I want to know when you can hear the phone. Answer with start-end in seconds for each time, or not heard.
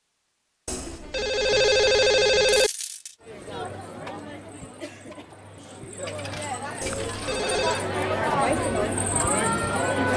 0.7-2.7, 6.8-7.8.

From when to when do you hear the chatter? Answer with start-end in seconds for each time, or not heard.
3.2-10.1.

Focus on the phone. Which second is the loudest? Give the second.
2 s.